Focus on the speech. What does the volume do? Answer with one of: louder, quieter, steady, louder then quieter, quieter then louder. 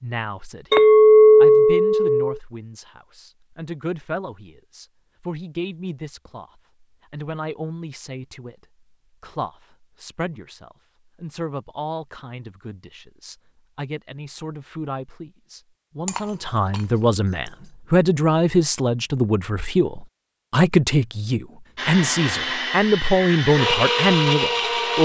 louder.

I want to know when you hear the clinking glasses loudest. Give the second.
1 s.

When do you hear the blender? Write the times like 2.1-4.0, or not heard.
21.8-24.9.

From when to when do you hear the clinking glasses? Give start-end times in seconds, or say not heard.
0.7-2.4, 16.1-16.8.